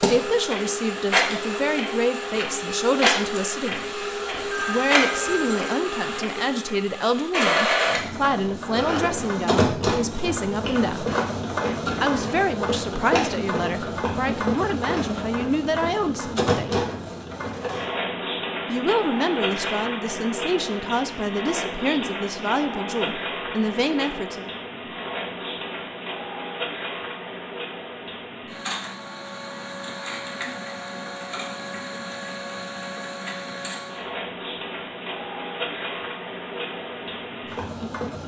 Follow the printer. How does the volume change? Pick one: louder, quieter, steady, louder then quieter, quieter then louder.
quieter.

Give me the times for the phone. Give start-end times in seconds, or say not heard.
4.3-5.8.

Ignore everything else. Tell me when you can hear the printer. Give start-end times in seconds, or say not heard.
0.0-38.2.